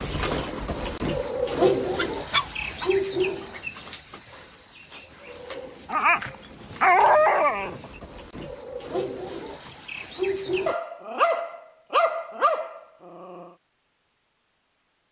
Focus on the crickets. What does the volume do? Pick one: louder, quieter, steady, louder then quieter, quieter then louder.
quieter then louder.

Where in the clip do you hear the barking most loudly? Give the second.
7 s.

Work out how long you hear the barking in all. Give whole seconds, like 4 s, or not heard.
6 s.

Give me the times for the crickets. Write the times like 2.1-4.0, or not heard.
0.0-10.8.